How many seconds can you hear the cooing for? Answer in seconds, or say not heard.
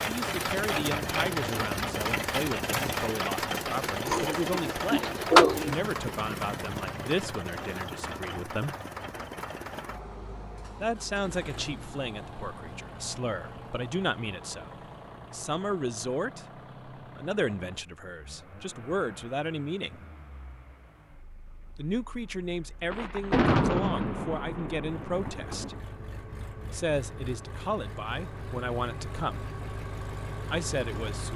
2 s.